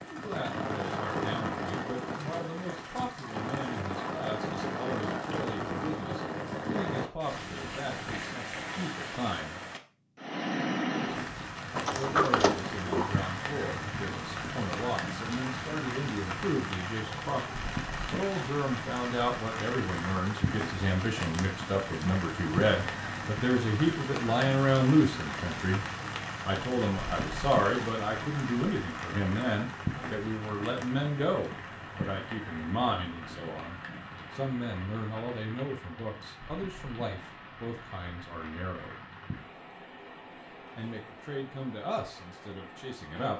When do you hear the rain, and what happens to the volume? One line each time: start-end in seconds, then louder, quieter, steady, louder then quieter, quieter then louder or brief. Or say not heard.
0.0-43.3 quieter.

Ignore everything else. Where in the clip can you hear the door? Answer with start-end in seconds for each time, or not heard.
11.8-13.2.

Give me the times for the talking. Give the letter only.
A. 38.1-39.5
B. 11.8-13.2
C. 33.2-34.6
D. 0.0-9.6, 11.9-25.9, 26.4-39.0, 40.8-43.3
D.